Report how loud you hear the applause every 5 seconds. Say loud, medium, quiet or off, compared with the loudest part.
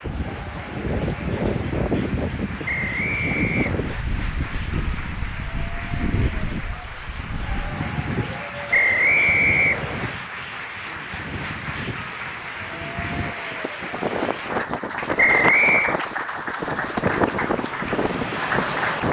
medium, medium, loud, loud.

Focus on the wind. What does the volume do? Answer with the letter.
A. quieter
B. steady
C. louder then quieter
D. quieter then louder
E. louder
D.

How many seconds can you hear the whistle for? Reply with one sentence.
The whistle can be heard for 4 seconds in total.